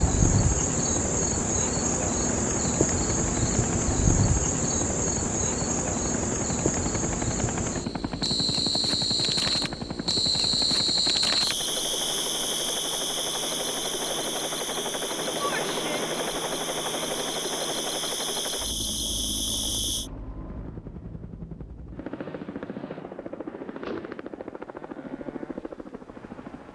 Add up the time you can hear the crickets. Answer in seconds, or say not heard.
20 s.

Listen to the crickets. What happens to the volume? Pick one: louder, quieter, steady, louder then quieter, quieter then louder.
quieter.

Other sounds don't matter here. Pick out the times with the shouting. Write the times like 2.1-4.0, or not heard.
15.4-16.1.